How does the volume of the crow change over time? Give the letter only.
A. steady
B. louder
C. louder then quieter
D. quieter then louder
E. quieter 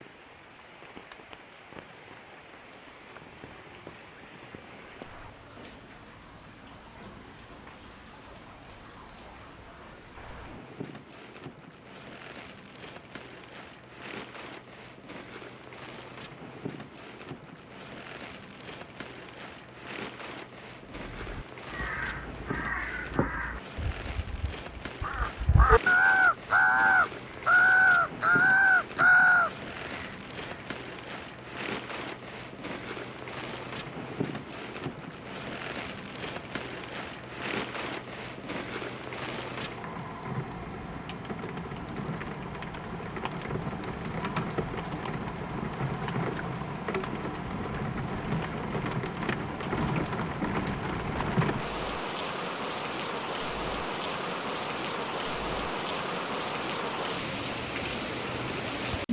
B.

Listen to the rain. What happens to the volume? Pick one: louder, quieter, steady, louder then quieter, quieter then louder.
louder.